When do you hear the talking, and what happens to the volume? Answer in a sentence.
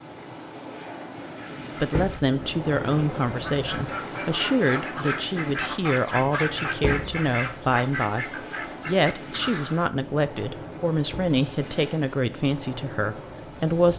The talking can be heard from 1.8 to 13.9 s, at a steady volume.